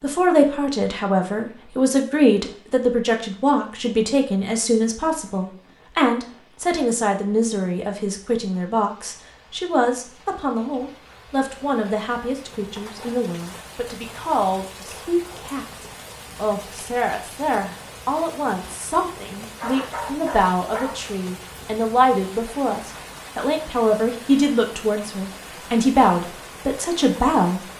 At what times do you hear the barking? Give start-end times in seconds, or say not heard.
19.4-21.0.